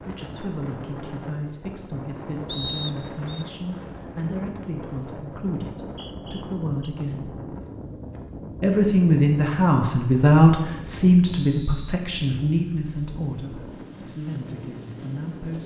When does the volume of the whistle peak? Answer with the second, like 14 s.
3 s.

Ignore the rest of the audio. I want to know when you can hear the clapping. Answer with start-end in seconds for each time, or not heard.
not heard.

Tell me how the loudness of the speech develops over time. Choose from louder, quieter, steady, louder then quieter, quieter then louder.
louder then quieter.